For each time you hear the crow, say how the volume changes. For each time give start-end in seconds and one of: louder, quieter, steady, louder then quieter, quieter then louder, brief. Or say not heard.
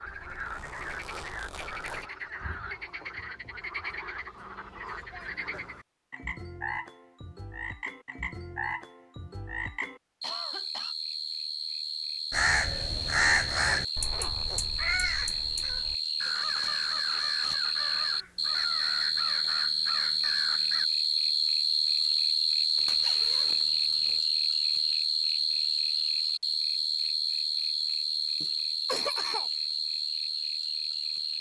12.3-20.9 quieter.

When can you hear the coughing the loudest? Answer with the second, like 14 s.
29 s.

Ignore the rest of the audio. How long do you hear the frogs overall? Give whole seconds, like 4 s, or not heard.
31 s.